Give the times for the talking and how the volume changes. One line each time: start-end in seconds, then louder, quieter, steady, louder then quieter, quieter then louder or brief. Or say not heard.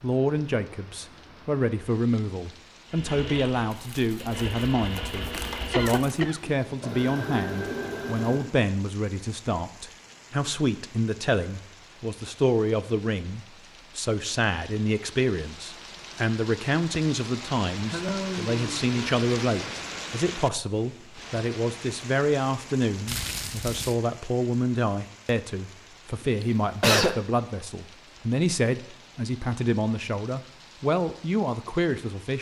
0.0-32.3 steady.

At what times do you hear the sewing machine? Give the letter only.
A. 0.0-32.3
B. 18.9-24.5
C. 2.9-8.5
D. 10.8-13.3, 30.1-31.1
C.